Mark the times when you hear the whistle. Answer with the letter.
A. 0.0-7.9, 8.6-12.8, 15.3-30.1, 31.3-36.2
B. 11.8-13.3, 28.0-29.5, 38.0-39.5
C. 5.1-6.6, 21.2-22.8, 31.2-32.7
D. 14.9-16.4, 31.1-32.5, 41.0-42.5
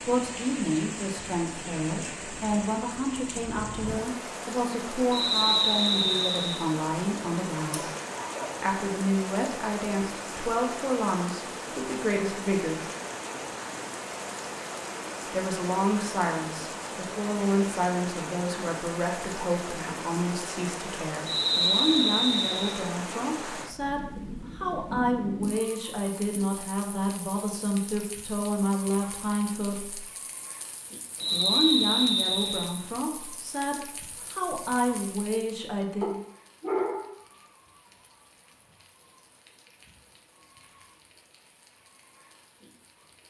C.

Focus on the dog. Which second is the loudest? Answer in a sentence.
The loudest moment of the dog is at 37 seconds.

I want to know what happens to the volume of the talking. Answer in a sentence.
The loudness of the talking stays about the same.